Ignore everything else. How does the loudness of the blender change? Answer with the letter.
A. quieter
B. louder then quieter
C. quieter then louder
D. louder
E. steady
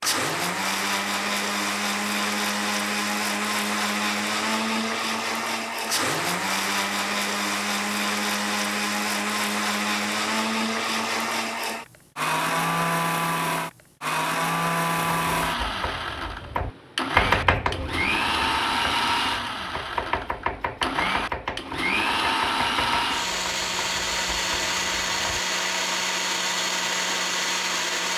E.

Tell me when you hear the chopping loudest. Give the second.
17 s.